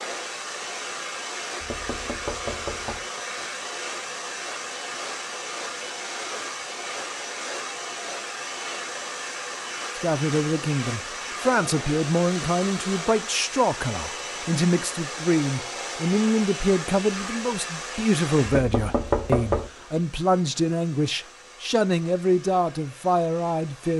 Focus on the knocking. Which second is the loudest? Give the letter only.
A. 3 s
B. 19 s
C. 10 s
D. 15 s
B.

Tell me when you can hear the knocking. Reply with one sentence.
The knocking can be heard from 1.6 to 3.0 s and from 18.4 to 19.7 s.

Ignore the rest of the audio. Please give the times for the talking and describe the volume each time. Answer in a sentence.
The talking can be heard from 9.9 to 23.9 s, at a steady volume.